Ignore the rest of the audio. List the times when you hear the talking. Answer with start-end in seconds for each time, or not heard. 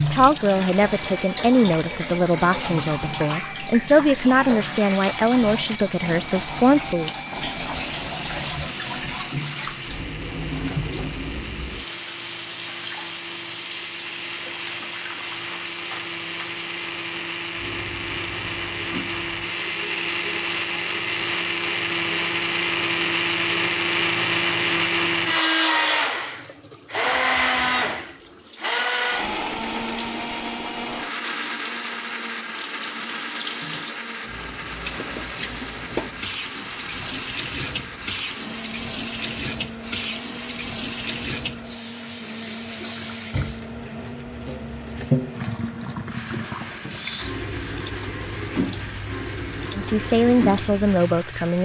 0.1-7.1, 49.8-51.6.